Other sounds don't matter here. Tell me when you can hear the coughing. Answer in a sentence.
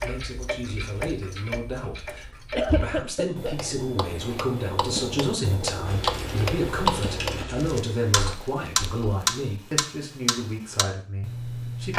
The coughing can be heard from 2.5 to 3.5 s.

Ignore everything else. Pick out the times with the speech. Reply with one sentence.
The speech can be heard from 0.0 to 11.9 s.